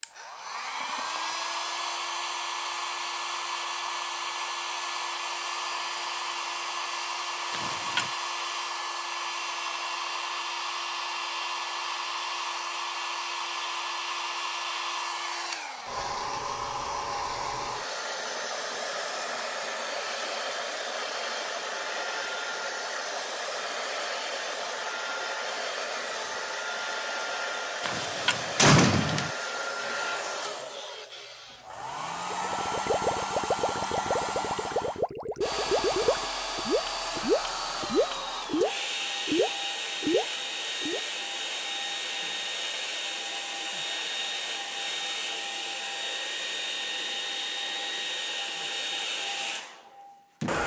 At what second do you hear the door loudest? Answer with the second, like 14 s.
29 s.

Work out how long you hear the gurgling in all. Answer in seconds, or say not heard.
9 s.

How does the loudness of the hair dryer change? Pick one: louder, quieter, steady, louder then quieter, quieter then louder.
steady.